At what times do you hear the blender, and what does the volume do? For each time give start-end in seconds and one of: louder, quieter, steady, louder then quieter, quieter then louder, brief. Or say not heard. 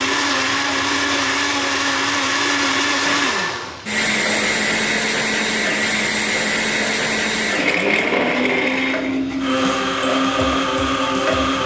0.0-11.6 steady.